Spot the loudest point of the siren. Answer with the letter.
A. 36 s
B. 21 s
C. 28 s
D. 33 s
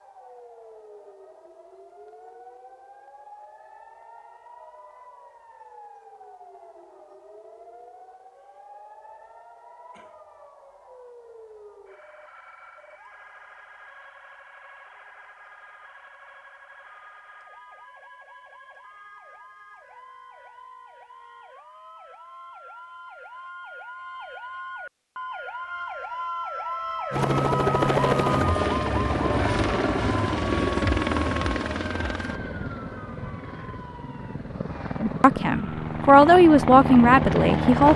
C.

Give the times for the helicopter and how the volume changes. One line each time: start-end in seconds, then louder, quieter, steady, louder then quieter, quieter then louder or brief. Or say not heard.
27.1-37.9 quieter then louder.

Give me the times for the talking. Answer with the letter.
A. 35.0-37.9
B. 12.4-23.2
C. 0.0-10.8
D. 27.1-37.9
A.